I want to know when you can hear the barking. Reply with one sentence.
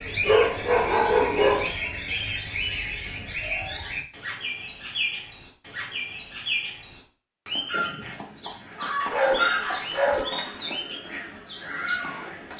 You can hear the barking from 0.2 to 1.7 s and from 9.0 to 10.6 s.